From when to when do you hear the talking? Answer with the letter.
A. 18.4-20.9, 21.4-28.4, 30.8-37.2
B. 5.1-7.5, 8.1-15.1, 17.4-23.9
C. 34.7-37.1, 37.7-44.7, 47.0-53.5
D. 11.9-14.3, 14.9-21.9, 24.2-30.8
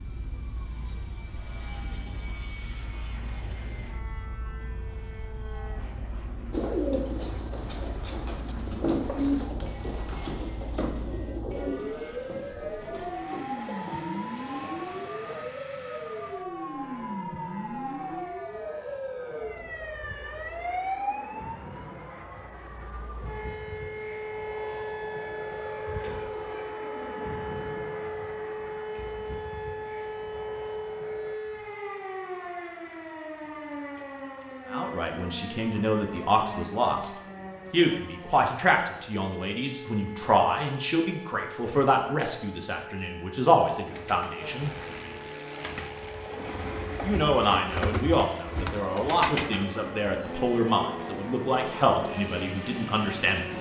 C.